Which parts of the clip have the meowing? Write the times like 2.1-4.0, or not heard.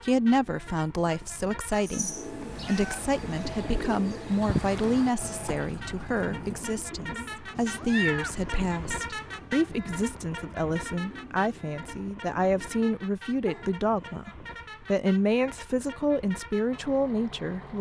1.8-3.0, 7.5-8.6, 13.4-14.2.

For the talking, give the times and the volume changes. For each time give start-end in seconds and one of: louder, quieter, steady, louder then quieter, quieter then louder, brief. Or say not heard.
0.0-17.7 steady.